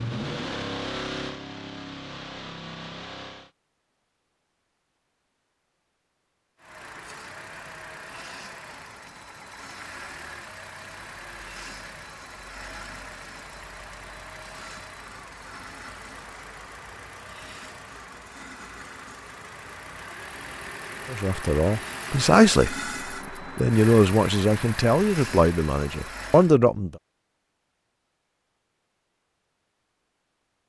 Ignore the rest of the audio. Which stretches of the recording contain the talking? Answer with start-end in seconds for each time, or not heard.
21.1-22.8, 23.6-26.9.